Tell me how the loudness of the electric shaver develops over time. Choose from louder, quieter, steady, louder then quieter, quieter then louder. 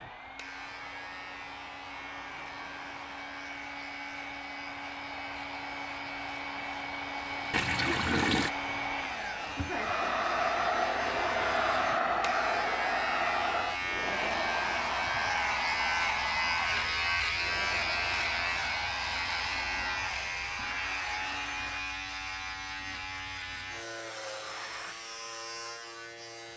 louder then quieter.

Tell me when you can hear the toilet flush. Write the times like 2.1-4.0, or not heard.
7.5-8.5.